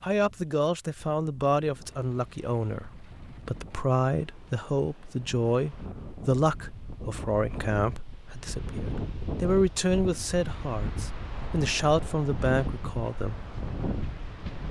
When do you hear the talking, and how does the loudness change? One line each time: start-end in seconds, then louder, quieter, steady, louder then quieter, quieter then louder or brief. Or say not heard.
0.0-13.4 steady.